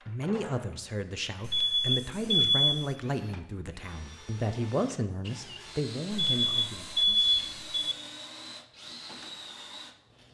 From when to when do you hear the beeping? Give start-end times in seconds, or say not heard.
1.4-3.0, 6.1-8.0.